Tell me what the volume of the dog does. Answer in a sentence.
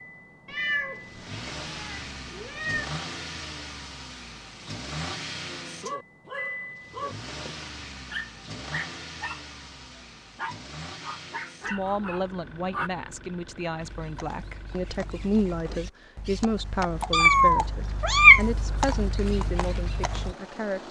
The loudness of the dog stays about the same.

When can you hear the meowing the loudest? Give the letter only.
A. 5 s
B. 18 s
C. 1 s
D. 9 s
B.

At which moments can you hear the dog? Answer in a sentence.
You can hear the dog from 5.7 to 12.9 s.